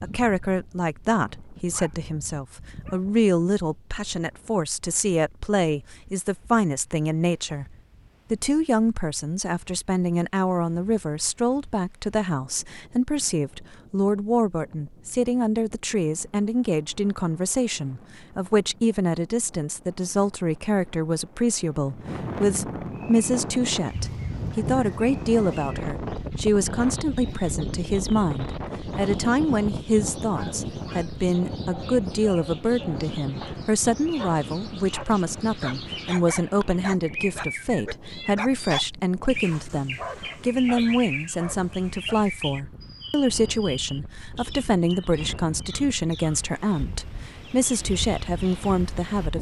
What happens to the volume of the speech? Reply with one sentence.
The volume of the speech stays about the same.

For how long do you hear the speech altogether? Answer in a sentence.
The speech can be heard for 49 seconds in total.